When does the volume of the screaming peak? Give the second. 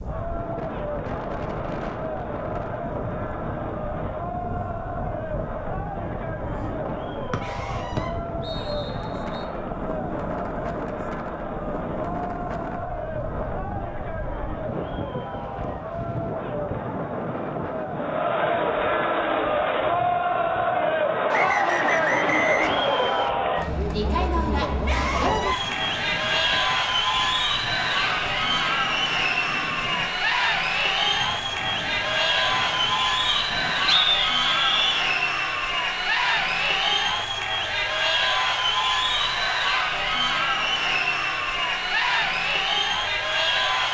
25 s.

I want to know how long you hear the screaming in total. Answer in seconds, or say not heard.
2 s.